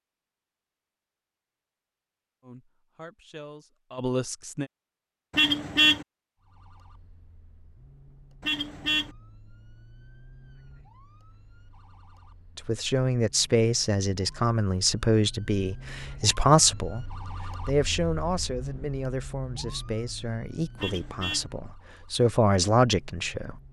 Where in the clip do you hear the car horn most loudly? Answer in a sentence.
The volume of the car horn peaks at 6 seconds.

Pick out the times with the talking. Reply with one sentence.
The talking can be heard from 2.4 to 4.7 s and from 12.6 to 23.6 s.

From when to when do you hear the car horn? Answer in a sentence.
The car horn can be heard from 5.3 to 6.0 s, from 8.4 to 9.1 s and from 20.8 to 21.5 s.